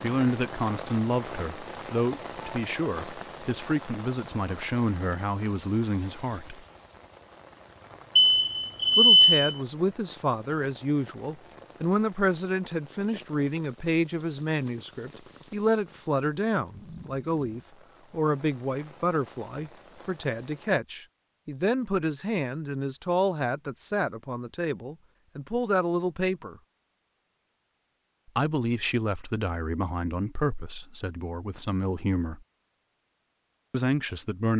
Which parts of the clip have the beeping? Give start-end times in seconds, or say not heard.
8.2-9.4.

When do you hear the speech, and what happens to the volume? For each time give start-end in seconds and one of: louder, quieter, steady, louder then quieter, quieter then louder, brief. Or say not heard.
0.0-6.6 steady
8.9-26.6 steady
28.4-32.4 quieter then louder
33.7-34.5 brief.